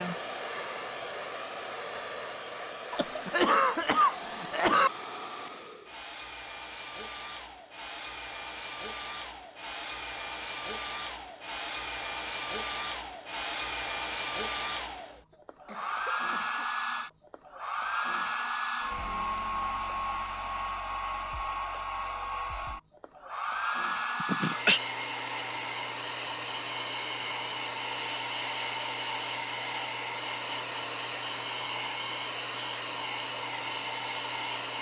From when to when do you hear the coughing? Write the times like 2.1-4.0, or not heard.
2.9-4.9, 15.3-17.1, 24.2-24.8.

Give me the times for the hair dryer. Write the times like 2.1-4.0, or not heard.
0.0-34.7.